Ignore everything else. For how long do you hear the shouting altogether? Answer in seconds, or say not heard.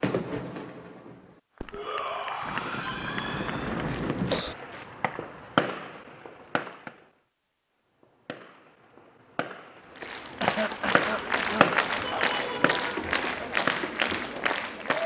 3 s.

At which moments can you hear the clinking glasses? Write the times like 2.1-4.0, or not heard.
not heard.